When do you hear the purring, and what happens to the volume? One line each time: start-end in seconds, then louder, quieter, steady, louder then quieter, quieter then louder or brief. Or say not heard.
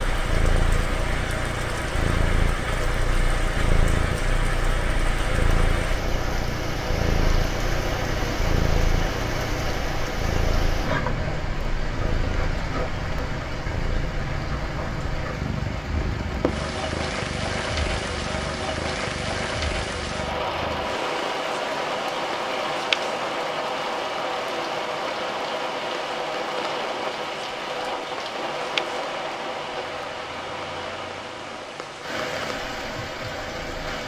0.0-33.8 quieter.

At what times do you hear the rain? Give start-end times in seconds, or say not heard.
0.0-34.0.